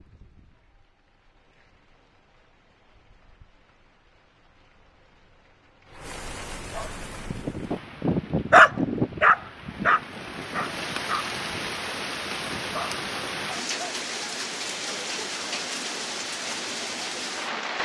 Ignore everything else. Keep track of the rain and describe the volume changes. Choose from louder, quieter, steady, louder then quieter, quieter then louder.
louder.